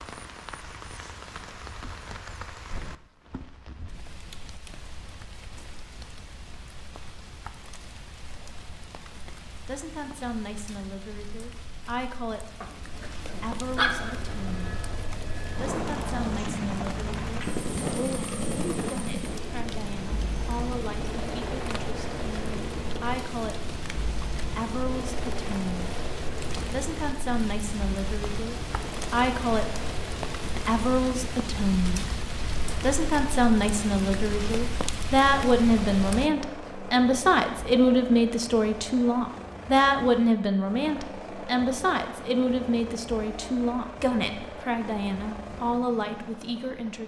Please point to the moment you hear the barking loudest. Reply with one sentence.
The loudest moment of the barking is at 14 seconds.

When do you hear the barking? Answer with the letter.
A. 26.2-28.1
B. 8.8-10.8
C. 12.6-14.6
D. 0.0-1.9
C.